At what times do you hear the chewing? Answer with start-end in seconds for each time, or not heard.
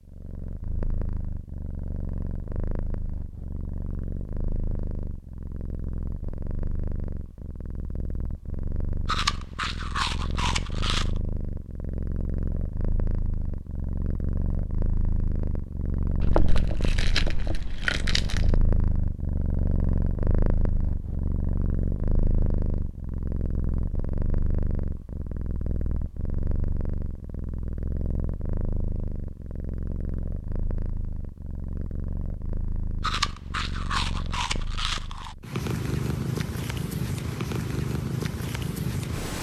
9.1-11.1, 16.2-18.6, 33.0-35.4.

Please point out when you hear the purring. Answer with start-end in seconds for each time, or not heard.
0.0-39.3.